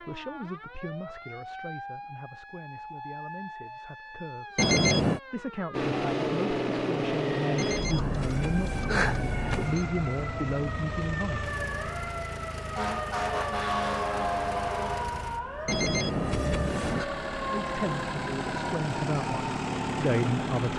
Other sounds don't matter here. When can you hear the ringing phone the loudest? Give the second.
5 s.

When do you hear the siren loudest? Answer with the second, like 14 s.
14 s.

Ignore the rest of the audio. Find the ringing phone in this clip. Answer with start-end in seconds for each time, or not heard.
4.5-5.2, 7.5-9.8, 15.7-17.1.